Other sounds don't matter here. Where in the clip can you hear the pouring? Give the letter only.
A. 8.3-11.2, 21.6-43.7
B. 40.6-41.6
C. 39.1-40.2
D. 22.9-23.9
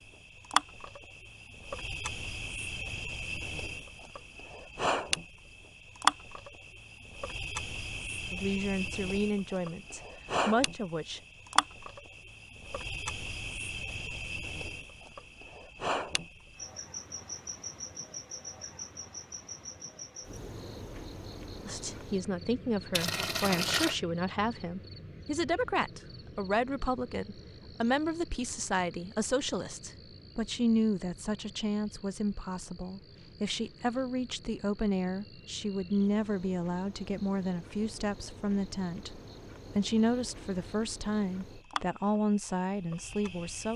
D.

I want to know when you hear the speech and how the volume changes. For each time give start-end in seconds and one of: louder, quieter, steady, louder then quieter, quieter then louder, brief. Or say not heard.
8.3-11.2 brief
21.6-43.7 steady.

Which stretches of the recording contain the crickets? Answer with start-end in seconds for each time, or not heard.
0.0-43.7.